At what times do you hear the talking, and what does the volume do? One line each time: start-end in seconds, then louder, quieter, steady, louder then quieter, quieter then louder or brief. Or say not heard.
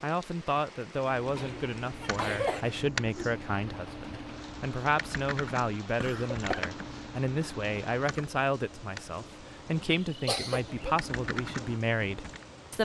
0.0-12.7 steady.